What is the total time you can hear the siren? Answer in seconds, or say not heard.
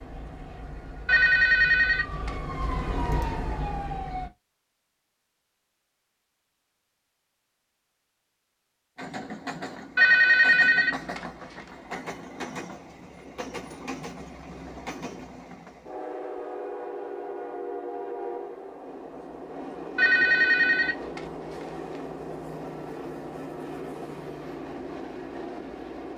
4 s.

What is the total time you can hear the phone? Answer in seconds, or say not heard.
5 s.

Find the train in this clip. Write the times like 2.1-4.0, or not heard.
8.9-26.1.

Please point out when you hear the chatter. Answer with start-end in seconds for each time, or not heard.
not heard.